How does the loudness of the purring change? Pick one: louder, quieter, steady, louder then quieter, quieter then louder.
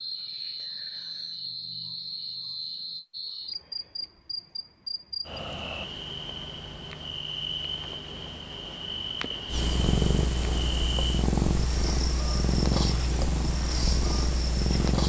steady.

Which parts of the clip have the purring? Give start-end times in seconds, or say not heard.
9.4-15.0.